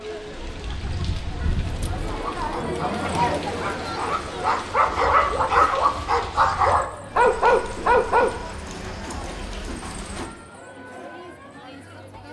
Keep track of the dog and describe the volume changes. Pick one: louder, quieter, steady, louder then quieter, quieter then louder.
louder.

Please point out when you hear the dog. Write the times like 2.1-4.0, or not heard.
2.0-8.3.